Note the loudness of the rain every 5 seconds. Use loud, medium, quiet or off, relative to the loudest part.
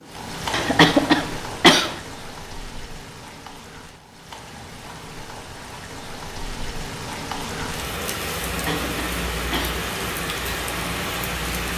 medium, loud, loud.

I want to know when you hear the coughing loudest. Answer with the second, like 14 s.
1 s.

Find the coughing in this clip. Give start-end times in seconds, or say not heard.
0.5-1.9, 8.4-9.8.